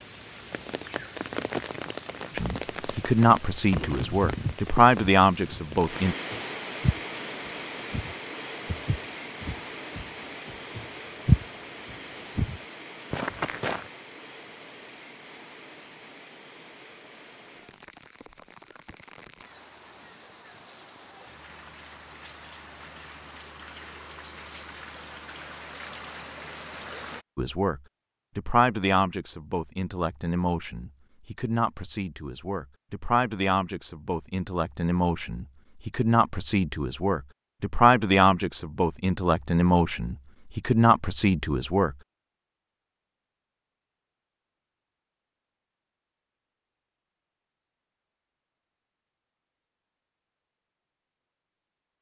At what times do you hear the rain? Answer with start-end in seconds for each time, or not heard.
0.0-27.2.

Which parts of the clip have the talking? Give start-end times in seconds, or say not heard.
2.4-6.2, 27.4-42.0.